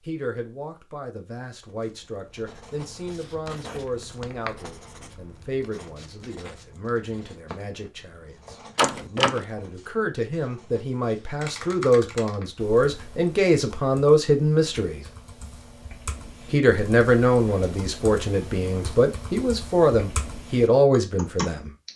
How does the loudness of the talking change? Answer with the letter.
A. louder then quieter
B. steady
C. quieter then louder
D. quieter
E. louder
E.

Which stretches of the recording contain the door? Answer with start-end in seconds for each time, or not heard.
8.8-9.4.